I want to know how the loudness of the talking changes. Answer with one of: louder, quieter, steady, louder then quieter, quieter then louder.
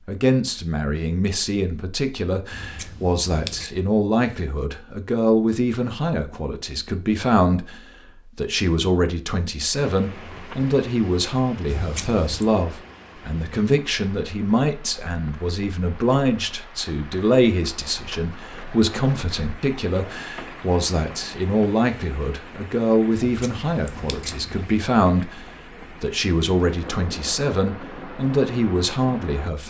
steady.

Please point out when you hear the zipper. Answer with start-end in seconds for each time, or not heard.
not heard.